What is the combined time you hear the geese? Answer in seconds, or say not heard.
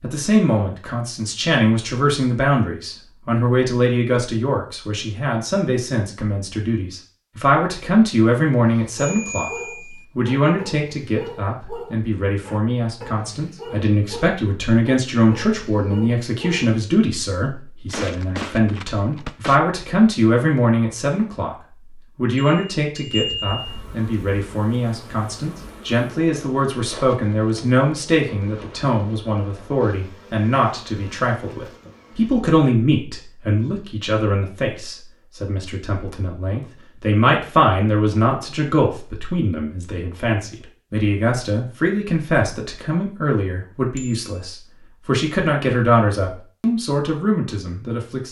2 s.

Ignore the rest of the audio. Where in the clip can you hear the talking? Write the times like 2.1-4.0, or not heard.
0.0-48.2.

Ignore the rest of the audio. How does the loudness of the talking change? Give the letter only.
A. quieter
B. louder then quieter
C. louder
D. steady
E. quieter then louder
D.